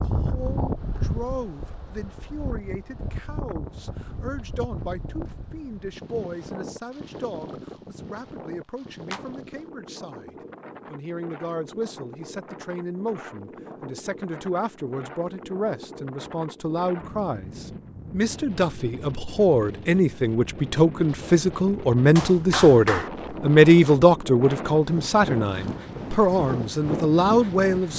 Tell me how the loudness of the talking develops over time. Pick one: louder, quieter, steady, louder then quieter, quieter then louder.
louder.